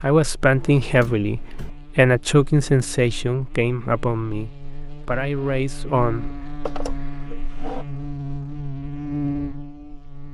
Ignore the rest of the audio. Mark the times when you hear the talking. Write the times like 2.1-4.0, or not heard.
0.0-6.4.